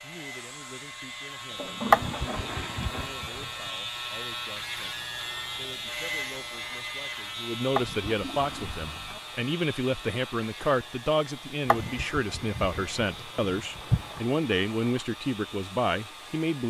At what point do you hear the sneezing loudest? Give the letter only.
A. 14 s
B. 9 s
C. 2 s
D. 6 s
C.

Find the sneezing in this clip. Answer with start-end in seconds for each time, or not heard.
1.9-3.5, 7.8-8.9, 11.7-14.2.